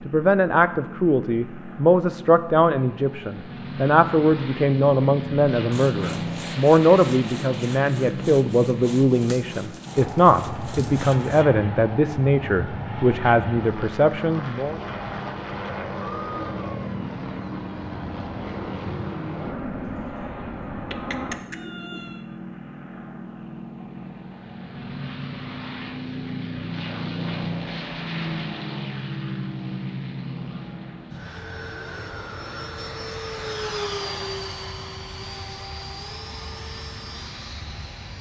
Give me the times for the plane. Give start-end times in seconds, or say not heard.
0.0-38.1.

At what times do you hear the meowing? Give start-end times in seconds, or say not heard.
20.9-22.2.